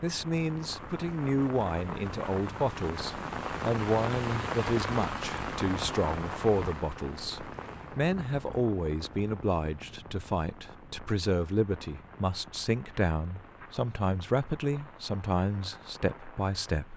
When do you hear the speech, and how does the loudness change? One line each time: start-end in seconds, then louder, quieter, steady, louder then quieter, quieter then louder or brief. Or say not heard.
0.0-16.9 steady.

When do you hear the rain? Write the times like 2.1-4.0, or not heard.
0.0-16.9.